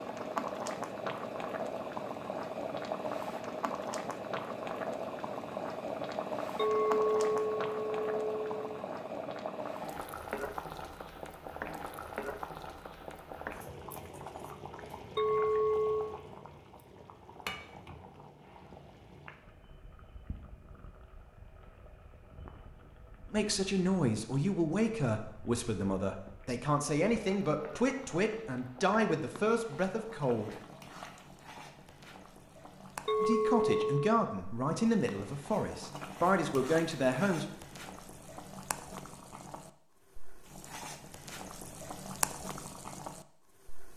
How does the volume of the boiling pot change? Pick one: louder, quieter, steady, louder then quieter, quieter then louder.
quieter then louder.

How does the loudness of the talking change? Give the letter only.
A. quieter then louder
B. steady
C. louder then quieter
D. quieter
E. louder
B.